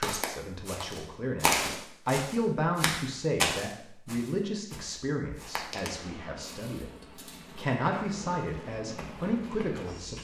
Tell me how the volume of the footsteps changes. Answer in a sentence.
The loudness of the footsteps goes down, then up.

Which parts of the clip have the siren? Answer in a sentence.
The siren can't be heard in this clip.